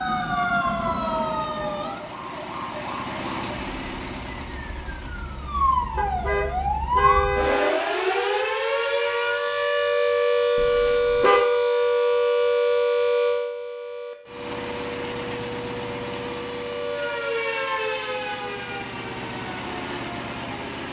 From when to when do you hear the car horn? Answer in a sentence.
You can hear the car horn from 6.0 to 7.8 s and from 10.6 to 11.4 s.